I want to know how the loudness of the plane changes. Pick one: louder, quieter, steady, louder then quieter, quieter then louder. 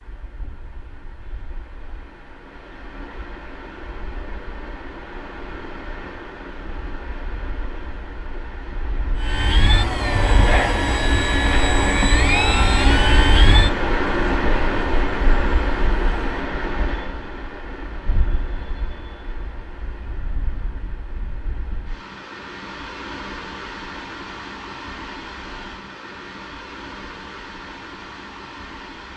quieter.